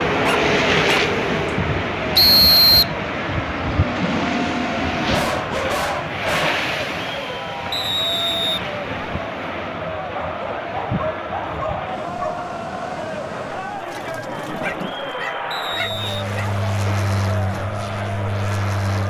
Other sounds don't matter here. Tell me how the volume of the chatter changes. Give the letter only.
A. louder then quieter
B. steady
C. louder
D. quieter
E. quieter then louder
B.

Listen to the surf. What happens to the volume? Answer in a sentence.
The loudness of the surf goes down.